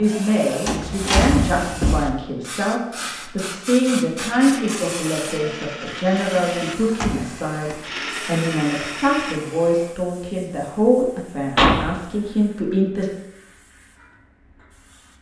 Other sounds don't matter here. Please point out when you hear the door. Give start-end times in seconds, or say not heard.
0.7-2.1, 6.8-7.8, 11.6-12.0.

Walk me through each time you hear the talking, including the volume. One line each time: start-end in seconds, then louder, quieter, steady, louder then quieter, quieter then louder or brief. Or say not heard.
0.0-13.1 steady.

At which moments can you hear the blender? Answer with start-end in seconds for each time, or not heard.
4.2-9.4.